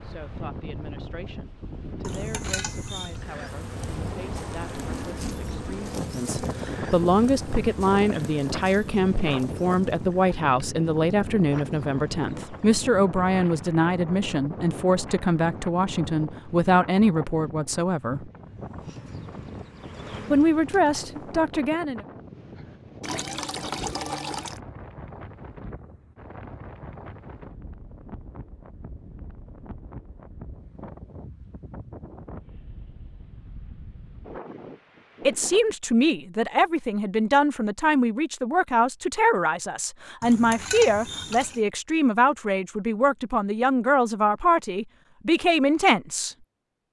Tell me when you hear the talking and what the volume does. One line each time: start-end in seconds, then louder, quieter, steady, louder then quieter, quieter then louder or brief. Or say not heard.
0.0-18.3 louder
20.3-22.0 brief
35.2-46.4 steady.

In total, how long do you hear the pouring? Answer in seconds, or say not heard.
4 s.